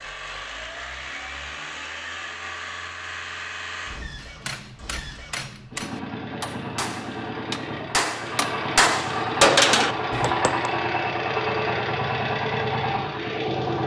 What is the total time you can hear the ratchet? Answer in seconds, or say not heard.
not heard.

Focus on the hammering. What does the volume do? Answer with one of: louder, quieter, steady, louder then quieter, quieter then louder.
louder.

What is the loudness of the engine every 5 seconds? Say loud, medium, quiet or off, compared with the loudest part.
medium, medium, loud.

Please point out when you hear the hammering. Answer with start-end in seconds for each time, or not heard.
4.2-10.7.